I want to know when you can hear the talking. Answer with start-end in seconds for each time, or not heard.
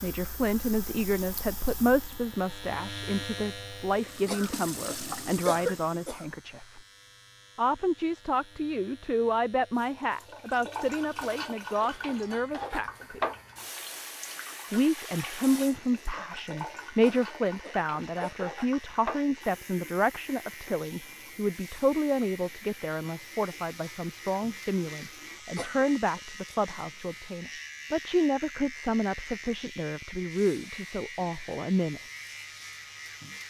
0.0-6.8, 7.5-13.2, 14.7-32.0.